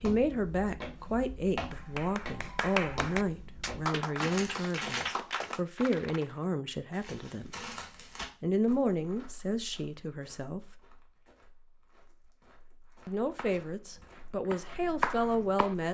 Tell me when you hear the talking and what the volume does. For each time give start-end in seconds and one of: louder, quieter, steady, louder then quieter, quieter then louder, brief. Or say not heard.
0.0-7.7 steady
8.4-10.8 brief
13.1-15.8 brief.